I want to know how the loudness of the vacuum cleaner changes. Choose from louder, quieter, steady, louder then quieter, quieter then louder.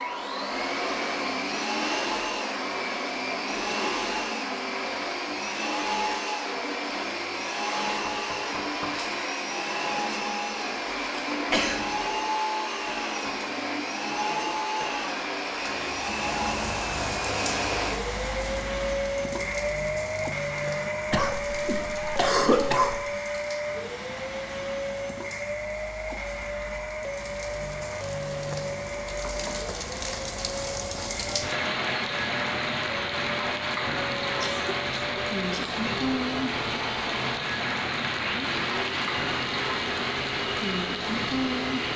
quieter.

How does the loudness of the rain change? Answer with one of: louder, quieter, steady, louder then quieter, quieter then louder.
quieter then louder.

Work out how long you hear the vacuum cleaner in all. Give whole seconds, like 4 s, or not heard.
42 s.